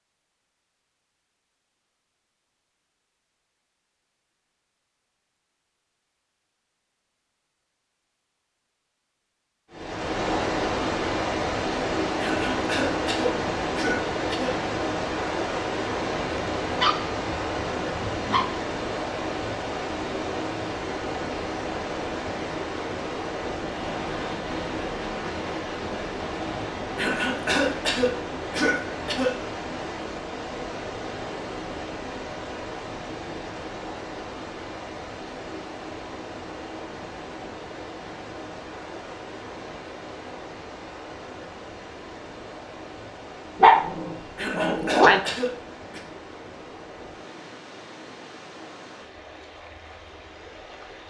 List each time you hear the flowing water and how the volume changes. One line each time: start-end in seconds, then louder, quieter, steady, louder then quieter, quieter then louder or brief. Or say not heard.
9.7-51.0 quieter.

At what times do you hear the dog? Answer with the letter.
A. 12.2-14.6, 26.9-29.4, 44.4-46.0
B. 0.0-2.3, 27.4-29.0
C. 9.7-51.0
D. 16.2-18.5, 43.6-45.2
D.